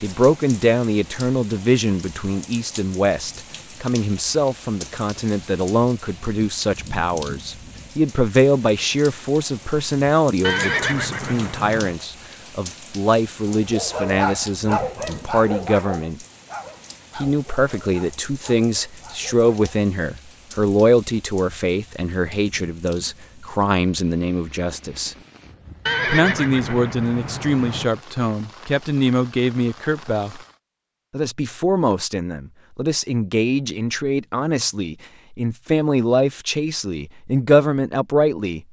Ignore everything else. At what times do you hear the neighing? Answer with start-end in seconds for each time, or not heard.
10.4-11.9, 25.9-27.9.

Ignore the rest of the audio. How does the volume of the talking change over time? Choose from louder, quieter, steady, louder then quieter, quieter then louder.
steady.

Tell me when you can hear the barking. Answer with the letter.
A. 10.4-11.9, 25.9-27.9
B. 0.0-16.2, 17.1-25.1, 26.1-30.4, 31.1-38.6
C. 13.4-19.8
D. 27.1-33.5
C.